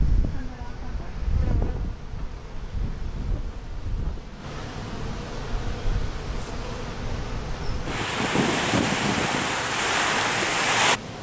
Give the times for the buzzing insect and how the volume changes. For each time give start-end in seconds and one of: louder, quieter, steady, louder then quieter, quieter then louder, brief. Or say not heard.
0.0-11.1 louder.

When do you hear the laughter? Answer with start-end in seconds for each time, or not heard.
not heard.